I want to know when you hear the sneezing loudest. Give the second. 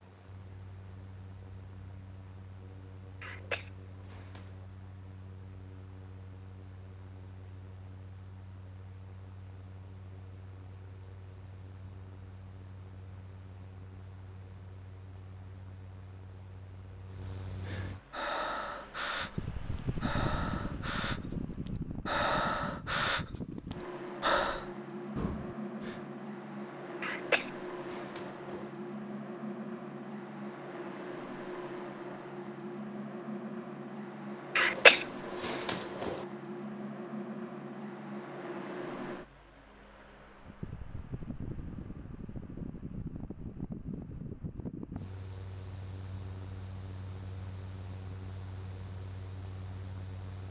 35 s.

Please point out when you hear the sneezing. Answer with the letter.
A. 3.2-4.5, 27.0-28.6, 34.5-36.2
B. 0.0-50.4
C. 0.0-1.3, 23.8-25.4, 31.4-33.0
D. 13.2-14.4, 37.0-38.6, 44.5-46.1
A.